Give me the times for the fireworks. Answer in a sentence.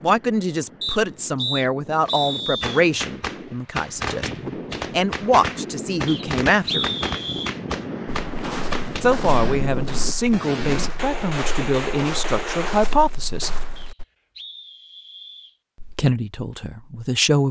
The fireworks can be heard from 2.0 to 12.9 s.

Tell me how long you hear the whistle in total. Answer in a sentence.
You can hear the whistle for 5 seconds altogether.